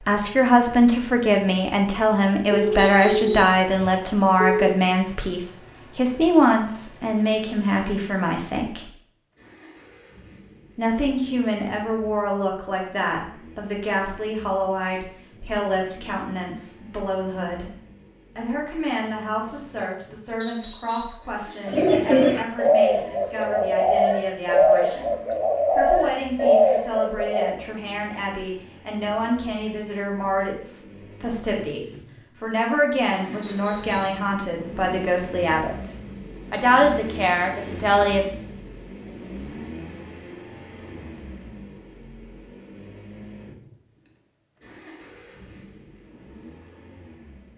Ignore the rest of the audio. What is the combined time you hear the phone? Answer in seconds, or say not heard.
2 s.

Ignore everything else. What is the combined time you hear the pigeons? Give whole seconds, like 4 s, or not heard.
6 s.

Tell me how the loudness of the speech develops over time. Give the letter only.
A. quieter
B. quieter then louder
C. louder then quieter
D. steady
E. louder
B.